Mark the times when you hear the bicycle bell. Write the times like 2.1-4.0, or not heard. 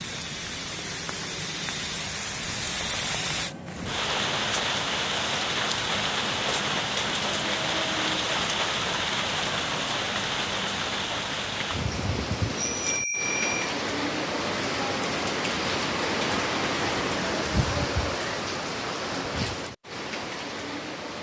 12.6-13.7.